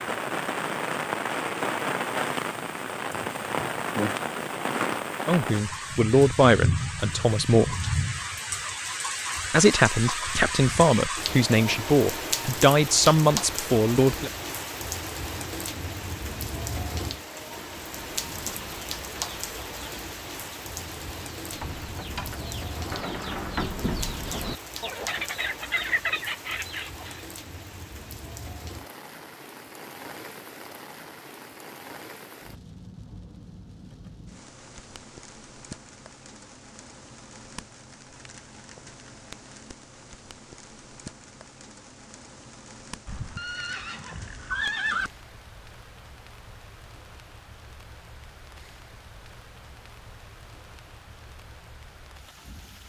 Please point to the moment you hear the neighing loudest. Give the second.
45 s.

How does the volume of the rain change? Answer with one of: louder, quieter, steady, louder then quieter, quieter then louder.
quieter.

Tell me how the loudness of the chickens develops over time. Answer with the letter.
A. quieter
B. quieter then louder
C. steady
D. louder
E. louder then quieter
D.